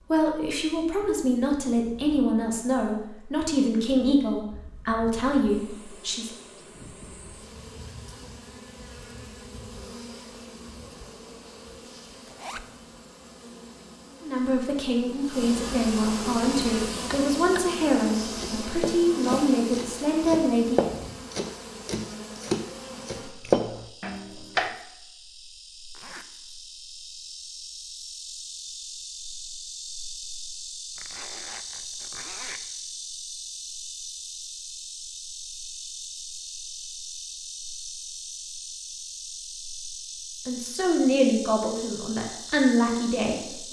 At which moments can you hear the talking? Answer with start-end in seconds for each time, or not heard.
0.0-6.3, 14.2-20.9, 40.5-43.6.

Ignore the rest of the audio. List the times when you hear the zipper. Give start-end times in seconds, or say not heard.
12.2-12.7, 25.9-26.3, 30.9-32.6.